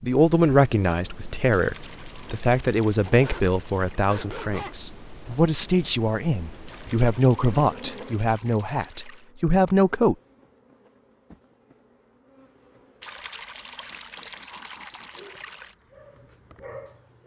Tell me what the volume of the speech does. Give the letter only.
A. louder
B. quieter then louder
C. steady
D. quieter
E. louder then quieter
C.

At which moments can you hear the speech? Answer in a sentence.
You can hear the speech from 0.0 to 10.2 s.